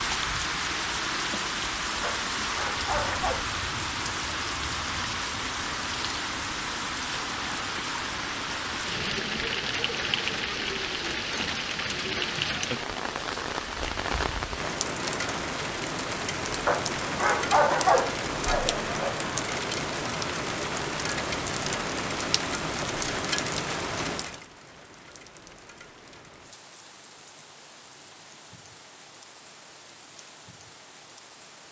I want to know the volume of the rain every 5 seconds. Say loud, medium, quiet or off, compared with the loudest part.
loud, loud, loud, loud, loud, quiet, quiet.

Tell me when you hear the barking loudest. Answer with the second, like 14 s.
18 s.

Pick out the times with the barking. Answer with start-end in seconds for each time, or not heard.
2.0-3.5, 16.6-19.2.